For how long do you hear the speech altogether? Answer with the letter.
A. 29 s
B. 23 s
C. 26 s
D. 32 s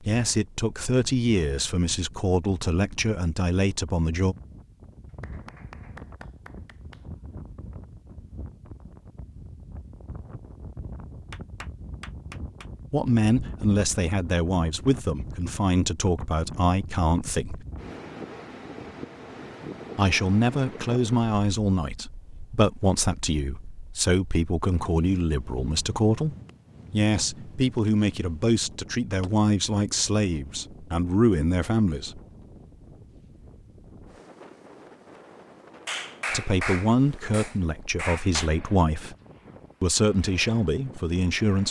C.